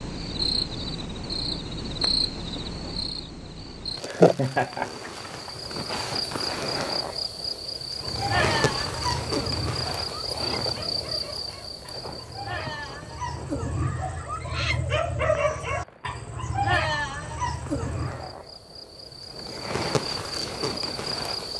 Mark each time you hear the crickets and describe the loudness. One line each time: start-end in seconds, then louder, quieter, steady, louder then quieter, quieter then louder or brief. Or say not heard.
0.0-21.5 quieter then louder.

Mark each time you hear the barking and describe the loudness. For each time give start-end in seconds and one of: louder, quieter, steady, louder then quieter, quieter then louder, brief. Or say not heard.
8.0-18.4 quieter then louder.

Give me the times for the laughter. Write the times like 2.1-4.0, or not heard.
4.0-5.5.